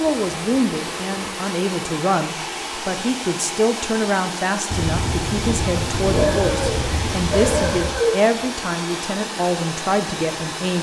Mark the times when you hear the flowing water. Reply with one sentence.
The flowing water can be heard from 0.0 to 10.7 s.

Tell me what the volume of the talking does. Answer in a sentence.
The loudness of the talking stays about the same.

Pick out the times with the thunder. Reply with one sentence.
You can hear the thunder from 4.7 to 8.1 s.